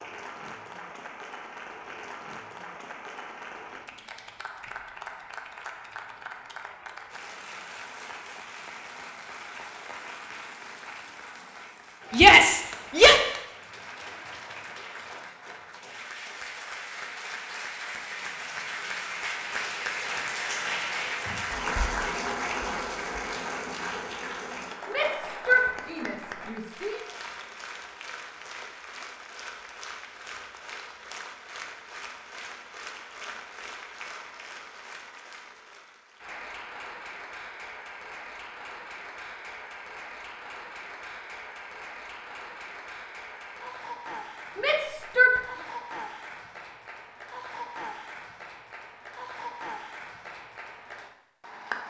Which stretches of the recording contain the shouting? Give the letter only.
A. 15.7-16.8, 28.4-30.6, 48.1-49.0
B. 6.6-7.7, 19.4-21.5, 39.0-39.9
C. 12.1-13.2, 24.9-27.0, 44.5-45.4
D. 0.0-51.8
C.